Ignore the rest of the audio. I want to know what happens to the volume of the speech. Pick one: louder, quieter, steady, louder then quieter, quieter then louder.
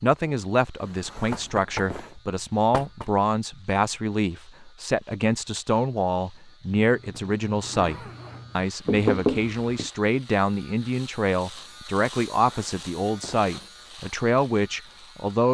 steady.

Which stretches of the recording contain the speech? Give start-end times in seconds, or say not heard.
0.0-15.4.